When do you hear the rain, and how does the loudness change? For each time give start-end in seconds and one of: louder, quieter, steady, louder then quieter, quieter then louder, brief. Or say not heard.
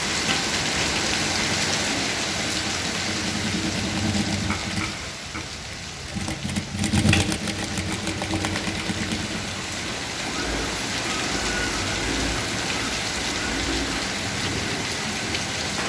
0.0-15.8 quieter then louder.